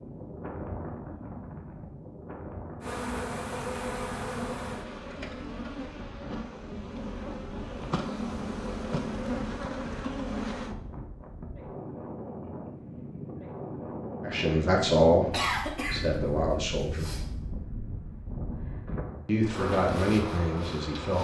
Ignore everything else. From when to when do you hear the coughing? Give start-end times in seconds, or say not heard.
15.3-17.2.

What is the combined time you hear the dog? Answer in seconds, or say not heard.
not heard.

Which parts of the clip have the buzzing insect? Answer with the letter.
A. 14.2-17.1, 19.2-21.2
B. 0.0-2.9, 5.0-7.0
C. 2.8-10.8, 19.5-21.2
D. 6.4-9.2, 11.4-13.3
C.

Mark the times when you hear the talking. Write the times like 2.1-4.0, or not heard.
14.2-17.1, 19.2-21.2.